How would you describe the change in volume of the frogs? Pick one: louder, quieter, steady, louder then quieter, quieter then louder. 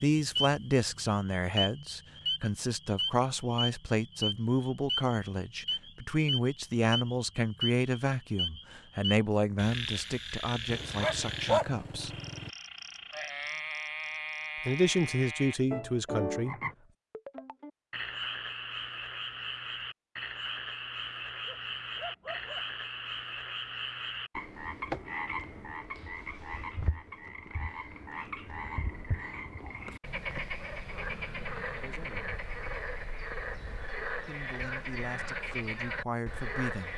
steady.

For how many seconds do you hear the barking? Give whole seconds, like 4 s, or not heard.
3 s.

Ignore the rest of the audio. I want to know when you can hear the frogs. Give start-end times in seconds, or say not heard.
0.1-36.9.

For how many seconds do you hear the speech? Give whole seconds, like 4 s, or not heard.
17 s.